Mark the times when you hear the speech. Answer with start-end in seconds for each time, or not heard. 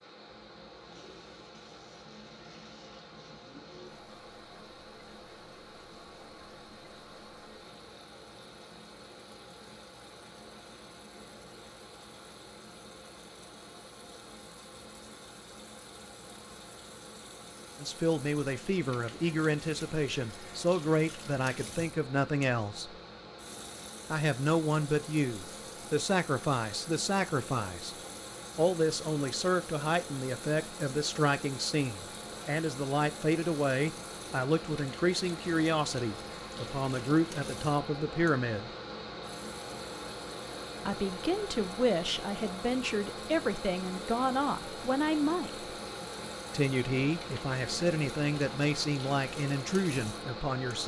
17.8-22.9, 24.1-27.9, 28.6-38.7, 40.9-45.7, 46.5-50.8.